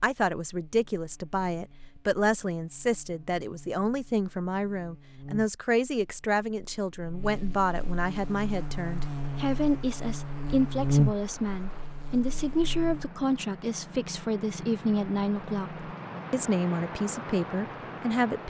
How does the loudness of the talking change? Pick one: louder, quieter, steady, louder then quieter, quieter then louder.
steady.